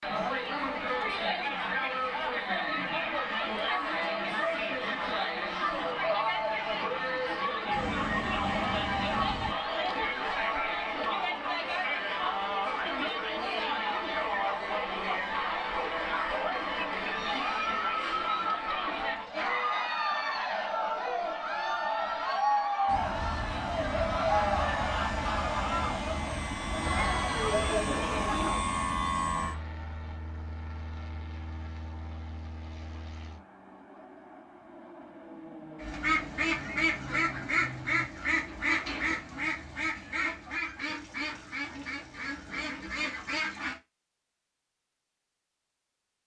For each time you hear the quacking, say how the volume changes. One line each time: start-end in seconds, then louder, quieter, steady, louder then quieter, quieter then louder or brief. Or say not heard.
35.8-43.8 quieter.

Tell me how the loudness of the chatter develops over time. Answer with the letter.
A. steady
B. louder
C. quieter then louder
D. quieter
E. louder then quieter
A.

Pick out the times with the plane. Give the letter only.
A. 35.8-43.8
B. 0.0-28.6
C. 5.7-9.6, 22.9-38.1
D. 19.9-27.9
C.